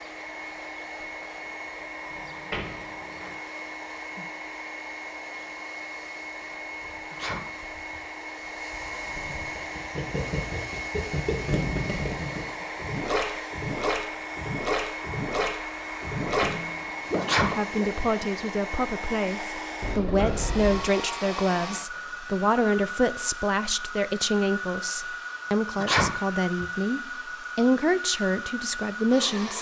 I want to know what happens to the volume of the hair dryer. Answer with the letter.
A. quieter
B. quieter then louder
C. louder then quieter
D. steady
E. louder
D.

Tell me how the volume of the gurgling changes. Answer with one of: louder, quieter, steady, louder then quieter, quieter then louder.
louder.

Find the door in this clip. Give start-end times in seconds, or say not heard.
2.1-3.4, 16.2-17.6, 19.8-20.9.